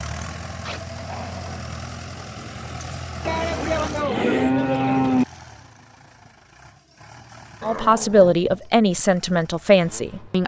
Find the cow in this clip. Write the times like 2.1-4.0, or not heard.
3.2-5.2.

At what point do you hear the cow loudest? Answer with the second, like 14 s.
5 s.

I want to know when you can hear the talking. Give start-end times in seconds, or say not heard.
7.6-10.4.